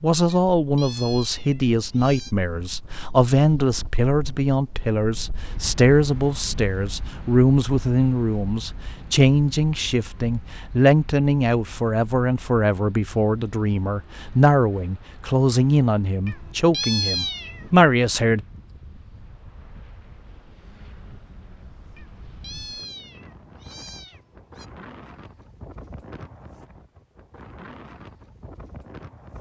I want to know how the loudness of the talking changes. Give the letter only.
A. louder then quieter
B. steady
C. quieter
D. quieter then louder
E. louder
B.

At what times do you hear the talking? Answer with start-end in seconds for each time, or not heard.
0.0-18.4.